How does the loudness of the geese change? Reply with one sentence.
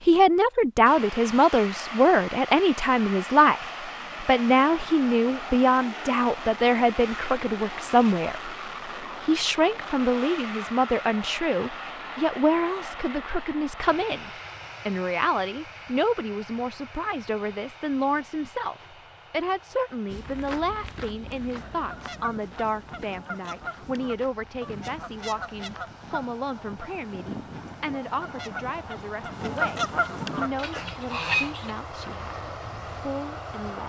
The volume of the geese goes up.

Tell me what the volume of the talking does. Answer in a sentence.
The loudness of the talking goes down.